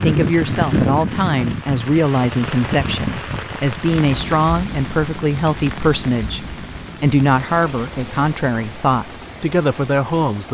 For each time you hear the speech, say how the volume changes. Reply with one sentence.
You can hear the speech from 0.0 to 10.5 s, at a steady volume.